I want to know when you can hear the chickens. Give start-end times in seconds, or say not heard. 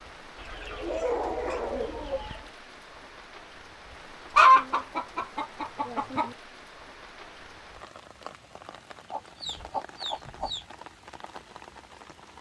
0.3-2.5, 4.3-6.3, 9.1-10.7.